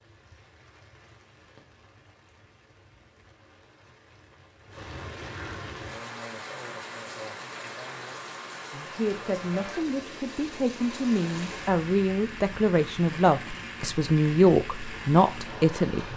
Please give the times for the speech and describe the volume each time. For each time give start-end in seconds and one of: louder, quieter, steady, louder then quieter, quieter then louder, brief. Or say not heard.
8.7-16.1 louder.